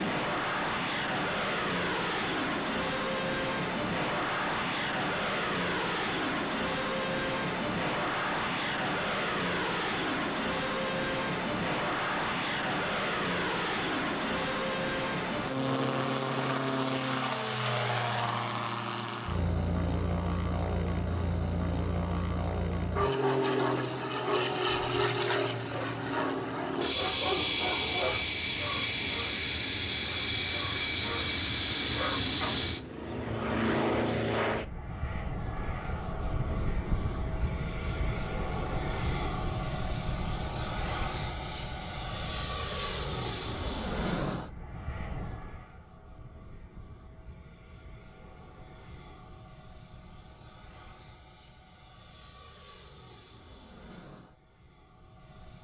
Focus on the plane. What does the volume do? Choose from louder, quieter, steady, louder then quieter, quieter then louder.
quieter.